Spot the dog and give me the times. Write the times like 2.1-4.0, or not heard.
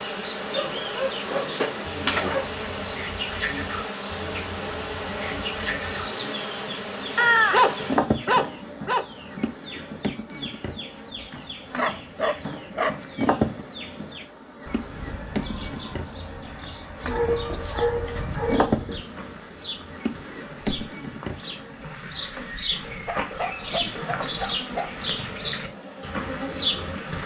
0.5-2.5, 7.2-9.1, 11.3-12.9, 17.0-19.1, 23.1-24.9.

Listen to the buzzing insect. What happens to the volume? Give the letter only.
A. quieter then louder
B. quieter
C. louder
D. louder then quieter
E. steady
B.